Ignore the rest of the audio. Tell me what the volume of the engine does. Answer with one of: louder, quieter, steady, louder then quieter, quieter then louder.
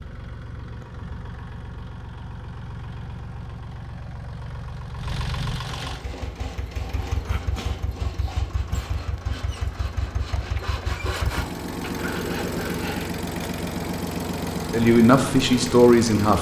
louder.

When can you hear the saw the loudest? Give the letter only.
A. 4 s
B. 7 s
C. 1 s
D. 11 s
D.